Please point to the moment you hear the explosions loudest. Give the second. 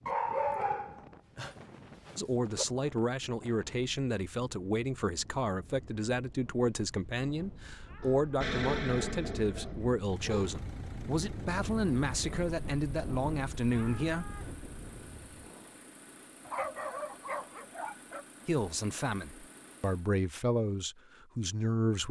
9 s.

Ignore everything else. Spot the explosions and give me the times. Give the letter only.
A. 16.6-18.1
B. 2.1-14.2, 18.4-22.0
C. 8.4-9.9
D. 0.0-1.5
C.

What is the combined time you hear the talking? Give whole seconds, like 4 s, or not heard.
16 s.